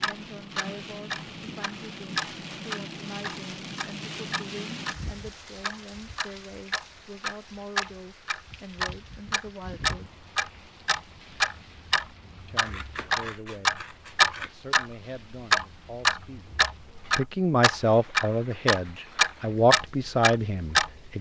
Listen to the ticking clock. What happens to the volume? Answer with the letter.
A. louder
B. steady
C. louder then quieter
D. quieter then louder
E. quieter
A.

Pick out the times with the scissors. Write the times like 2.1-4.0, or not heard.
12.6-14.6.